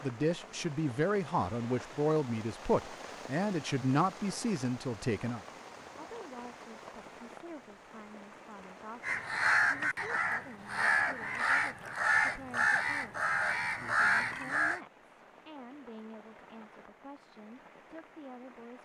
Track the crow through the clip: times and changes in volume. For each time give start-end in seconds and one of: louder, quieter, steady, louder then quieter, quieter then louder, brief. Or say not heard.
9.0-14.8 steady.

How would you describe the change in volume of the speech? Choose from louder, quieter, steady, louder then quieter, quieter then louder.
quieter.